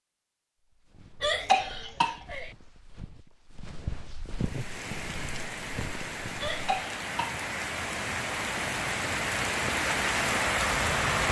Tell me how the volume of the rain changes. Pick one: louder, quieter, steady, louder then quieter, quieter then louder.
louder.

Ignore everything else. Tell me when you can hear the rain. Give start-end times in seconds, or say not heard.
4.3-11.2.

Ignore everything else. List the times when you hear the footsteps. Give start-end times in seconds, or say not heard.
0.7-6.6.